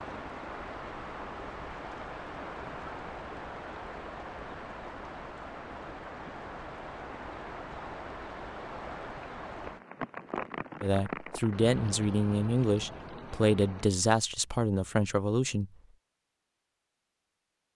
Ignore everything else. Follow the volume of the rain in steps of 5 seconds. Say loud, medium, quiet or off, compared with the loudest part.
loud, loud, loud, off.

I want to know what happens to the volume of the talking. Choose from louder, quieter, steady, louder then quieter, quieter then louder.
steady.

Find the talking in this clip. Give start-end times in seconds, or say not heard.
10.8-15.7.